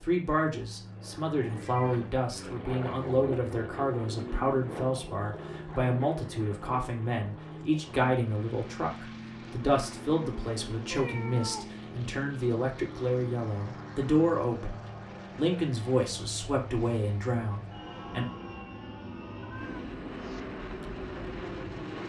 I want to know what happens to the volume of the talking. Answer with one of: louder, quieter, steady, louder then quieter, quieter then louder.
steady.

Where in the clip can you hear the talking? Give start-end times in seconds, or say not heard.
0.0-18.2.